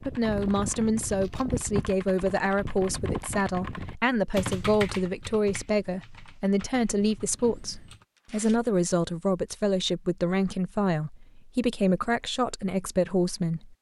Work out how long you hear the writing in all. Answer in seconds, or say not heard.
not heard.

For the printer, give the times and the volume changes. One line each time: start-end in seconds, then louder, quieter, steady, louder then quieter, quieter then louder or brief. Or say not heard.
not heard.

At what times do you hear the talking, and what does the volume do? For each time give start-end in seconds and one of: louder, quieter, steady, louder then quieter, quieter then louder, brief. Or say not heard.
0.0-13.7 steady.